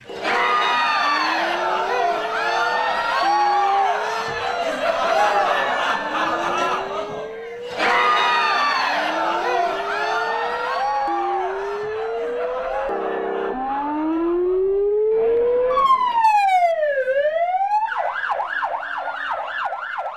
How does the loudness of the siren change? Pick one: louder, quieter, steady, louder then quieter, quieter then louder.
louder.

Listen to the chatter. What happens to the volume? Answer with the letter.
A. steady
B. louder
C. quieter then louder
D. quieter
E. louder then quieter
D.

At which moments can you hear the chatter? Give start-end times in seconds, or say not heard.
0.1-16.2.